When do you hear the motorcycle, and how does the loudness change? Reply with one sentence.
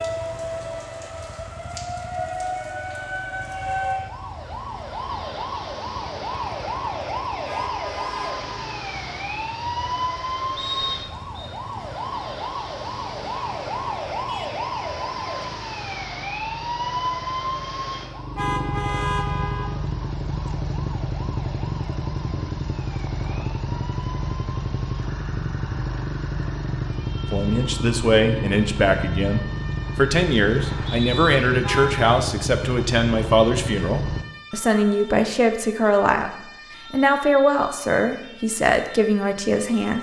The motorcycle can be heard from 0.0 to 34.2 s, getting louder.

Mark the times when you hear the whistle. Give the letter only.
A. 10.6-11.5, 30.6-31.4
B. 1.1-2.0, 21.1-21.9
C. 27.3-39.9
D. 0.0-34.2
A.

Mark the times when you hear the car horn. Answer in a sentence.
You can hear the car horn from 7.5 to 8.8 s, from 18.4 to 19.8 s and from 31.6 to 32.0 s.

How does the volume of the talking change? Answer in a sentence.
The loudness of the talking stays about the same.